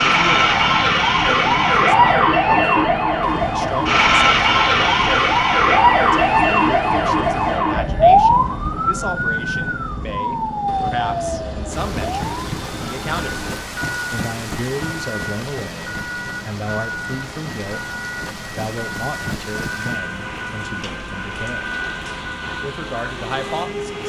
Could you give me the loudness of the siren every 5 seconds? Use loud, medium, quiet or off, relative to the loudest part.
loud, loud, medium, quiet, quiet.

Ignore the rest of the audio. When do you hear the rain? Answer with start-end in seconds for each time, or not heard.
11.7-24.0.